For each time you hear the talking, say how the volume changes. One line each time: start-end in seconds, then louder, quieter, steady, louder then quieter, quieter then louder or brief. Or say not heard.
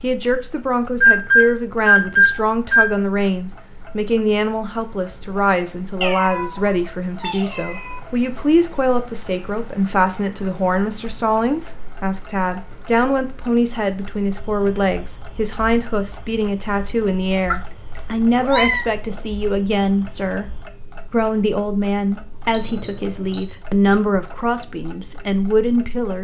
0.0-26.1 steady.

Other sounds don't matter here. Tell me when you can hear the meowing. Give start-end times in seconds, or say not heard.
6.0-8.0, 17.5-18.9.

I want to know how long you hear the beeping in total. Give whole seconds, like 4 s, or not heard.
3 s.